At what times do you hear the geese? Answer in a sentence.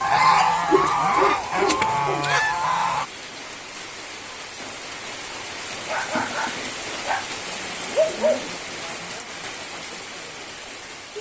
You can hear the geese from 0.0 to 3.0 s.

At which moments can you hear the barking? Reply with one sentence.
The barking can be heard from 0.7 to 2.3 s and from 5.8 to 8.4 s.